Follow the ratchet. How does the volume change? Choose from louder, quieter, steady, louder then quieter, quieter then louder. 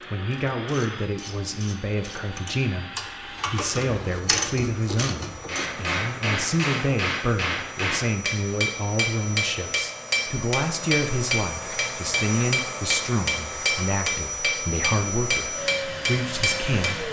louder.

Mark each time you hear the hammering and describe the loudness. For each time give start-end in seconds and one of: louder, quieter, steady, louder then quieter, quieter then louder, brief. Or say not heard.
5.5-17.0 steady.